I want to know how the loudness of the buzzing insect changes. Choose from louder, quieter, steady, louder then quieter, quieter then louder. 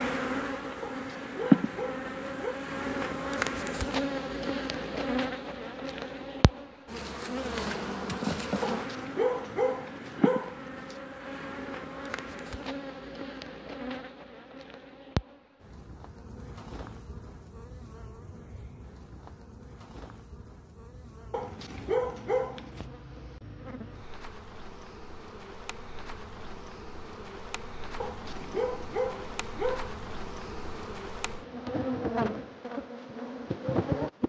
quieter then louder.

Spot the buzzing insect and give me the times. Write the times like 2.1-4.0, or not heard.
0.0-34.2.